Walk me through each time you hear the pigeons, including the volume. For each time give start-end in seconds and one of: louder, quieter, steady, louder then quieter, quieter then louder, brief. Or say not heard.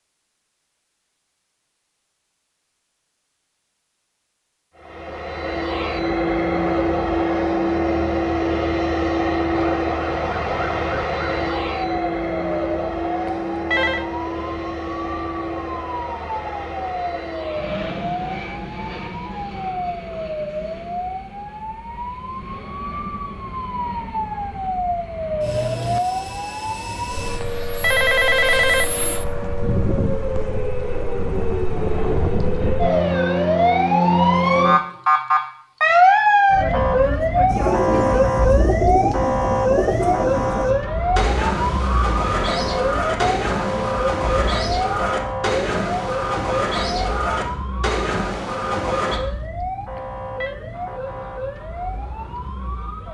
37.5-49.2 steady.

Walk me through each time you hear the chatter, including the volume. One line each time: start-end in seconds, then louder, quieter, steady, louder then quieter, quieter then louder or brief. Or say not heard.
not heard.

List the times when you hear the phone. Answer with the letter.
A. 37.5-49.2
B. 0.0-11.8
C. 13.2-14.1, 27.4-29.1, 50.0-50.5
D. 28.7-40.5
C.